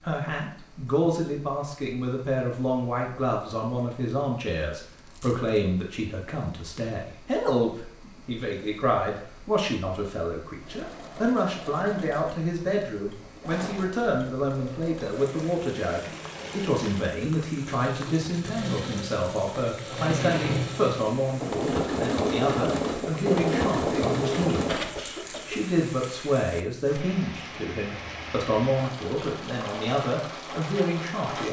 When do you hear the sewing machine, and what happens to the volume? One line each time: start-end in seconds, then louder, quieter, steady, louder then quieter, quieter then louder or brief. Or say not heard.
10.6-24.9 louder.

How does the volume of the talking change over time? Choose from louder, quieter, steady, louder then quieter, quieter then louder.
steady.